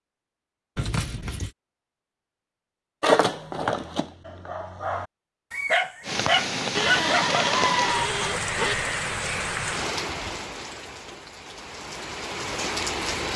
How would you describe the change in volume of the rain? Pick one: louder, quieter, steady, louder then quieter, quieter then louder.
quieter then louder.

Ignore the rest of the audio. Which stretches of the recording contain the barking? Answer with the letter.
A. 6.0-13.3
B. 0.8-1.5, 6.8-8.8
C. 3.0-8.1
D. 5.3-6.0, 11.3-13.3
C.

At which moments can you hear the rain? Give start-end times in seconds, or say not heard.
6.0-13.3.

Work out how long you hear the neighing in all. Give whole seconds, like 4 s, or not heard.
3 s.